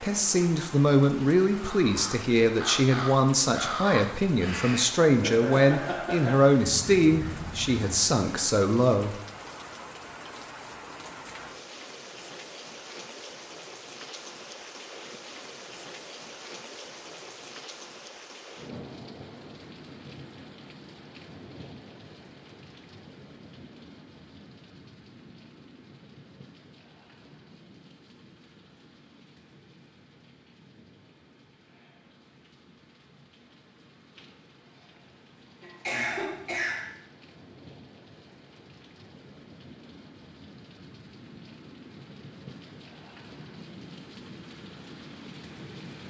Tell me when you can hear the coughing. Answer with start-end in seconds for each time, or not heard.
35.6-36.9.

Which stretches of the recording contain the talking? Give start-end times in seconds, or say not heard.
0.0-9.2.